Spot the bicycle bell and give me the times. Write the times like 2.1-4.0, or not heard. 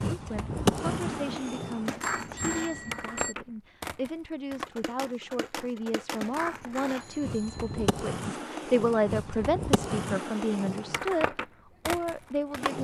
1.3-3.4, 7.0-7.9.